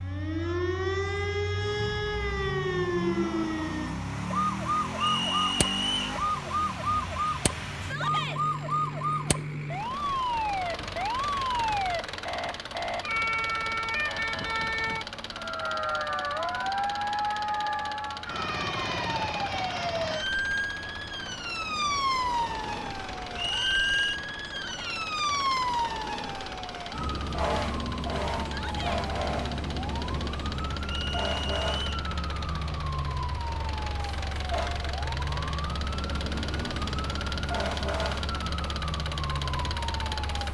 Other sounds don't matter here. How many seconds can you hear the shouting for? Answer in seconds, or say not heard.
2 s.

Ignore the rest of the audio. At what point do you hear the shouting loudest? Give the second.
8 s.